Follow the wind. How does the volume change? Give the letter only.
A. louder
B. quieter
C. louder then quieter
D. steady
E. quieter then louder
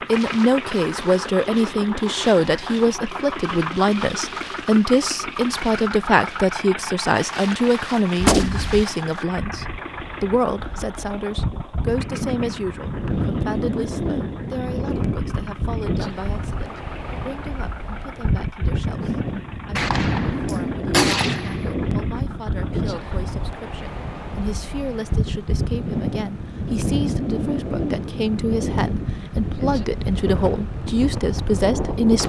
A.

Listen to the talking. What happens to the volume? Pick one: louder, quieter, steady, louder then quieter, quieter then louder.
quieter then louder.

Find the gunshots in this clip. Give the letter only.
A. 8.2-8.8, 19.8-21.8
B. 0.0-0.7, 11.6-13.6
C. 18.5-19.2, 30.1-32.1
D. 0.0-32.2
A.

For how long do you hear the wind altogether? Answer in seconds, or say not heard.
32 s.